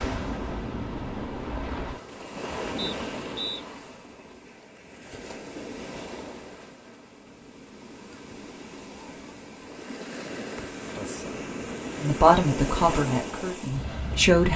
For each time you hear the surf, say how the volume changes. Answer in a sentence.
You can hear the surf from 0.0 to 14.5 s, getting quieter then louder.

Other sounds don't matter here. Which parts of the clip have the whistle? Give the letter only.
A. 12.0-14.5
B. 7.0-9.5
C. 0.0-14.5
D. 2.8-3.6
D.